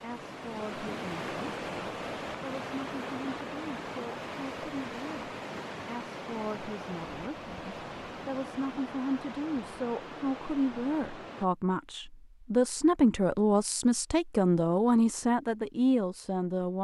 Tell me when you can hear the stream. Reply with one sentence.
You can hear the stream from 0.0 to 11.4 s.